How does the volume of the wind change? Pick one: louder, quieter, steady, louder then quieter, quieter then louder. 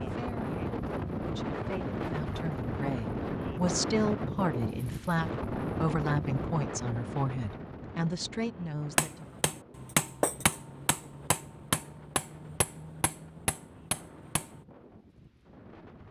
quieter.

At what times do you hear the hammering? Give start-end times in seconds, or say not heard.
8.9-14.6.